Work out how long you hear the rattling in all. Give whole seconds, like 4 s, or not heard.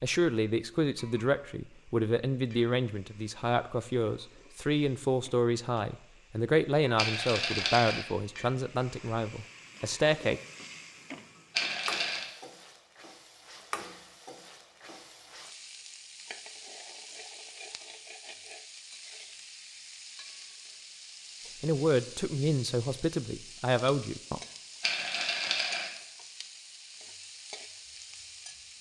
3 s.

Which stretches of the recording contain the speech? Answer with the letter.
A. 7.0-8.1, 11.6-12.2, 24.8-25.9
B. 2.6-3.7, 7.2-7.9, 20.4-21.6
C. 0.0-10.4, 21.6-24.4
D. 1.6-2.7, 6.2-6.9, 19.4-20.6
C.